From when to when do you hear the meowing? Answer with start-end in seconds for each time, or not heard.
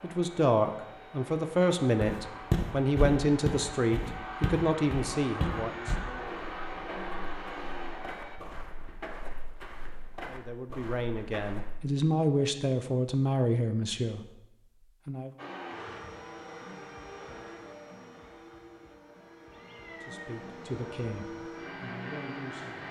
19.5-20.4.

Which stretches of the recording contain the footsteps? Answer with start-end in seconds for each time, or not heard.
2.0-11.8.